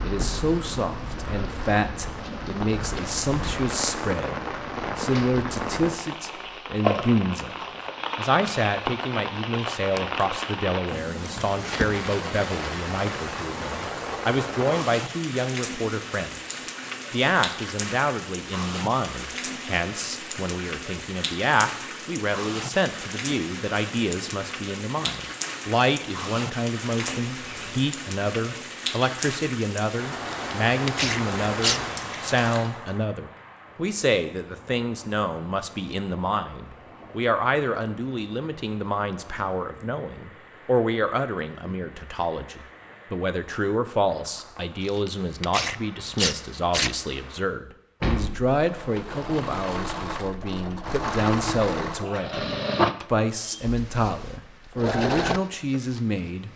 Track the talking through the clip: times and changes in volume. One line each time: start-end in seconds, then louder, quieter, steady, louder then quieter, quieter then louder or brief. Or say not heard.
0.0-56.5 steady.